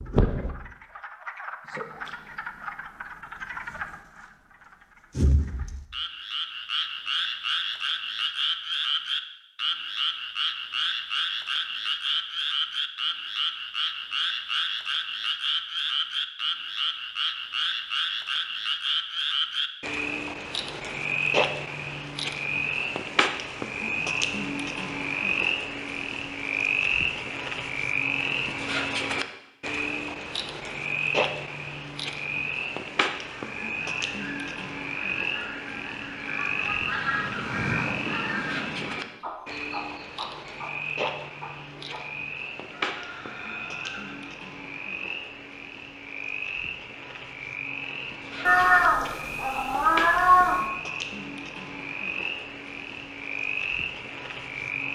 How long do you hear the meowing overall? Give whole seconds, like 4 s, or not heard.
2 s.